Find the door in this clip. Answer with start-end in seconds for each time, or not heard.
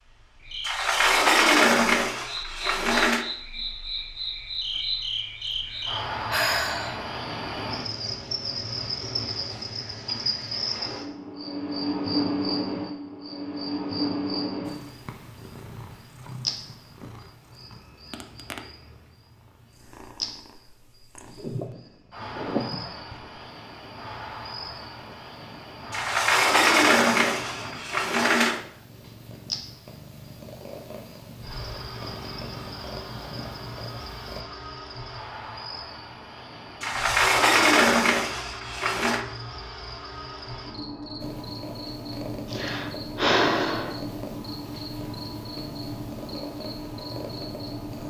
0.7-3.2, 25.9-28.6, 36.8-39.2.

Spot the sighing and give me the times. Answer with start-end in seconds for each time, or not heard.
5.5-7.1, 21.2-22.9, 42.5-44.0.